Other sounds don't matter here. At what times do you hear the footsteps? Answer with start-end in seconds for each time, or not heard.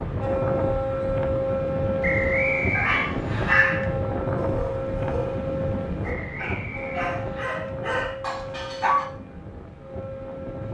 not heard.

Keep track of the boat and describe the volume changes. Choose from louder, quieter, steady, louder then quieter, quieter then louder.
quieter.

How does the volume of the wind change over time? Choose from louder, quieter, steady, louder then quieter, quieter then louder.
quieter.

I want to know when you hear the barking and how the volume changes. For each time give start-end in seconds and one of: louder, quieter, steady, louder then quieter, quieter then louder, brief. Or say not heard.
2.7-9.1 quieter then louder.